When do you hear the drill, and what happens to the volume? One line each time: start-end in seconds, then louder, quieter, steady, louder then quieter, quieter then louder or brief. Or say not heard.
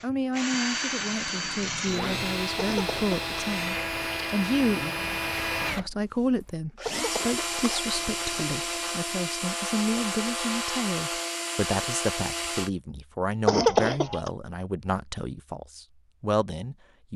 0.0-12.7 steady.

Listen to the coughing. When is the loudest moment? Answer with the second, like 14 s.
14 s.